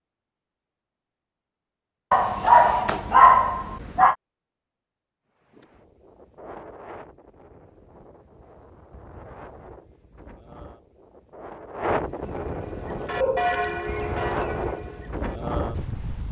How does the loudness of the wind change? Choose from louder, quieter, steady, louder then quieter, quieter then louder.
louder.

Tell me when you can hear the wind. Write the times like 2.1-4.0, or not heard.
5.4-16.2.